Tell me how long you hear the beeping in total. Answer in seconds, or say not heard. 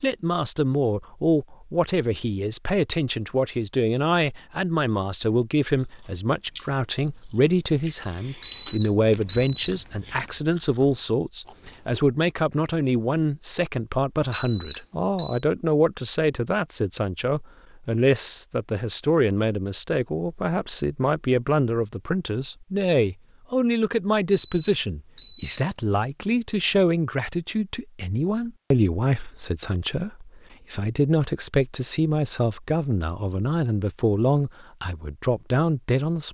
4 s.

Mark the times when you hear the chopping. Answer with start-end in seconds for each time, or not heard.
not heard.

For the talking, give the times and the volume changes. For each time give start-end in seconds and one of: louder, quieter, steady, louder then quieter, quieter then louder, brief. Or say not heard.
0.0-36.2 steady.